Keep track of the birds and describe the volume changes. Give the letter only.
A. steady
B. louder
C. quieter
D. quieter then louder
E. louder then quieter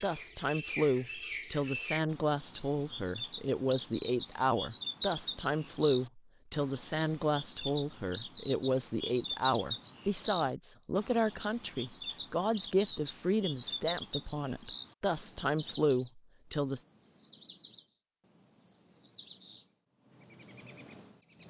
C.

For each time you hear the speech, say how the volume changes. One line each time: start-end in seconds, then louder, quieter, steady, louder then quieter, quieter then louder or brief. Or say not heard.
0.0-16.8 steady.